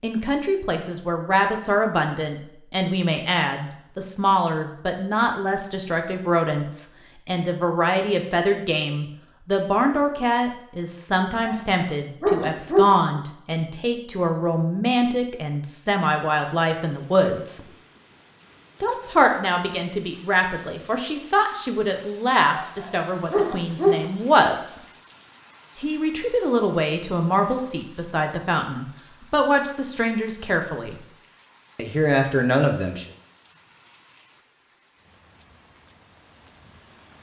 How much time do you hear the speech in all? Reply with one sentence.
The speech can be heard for 30 seconds in total.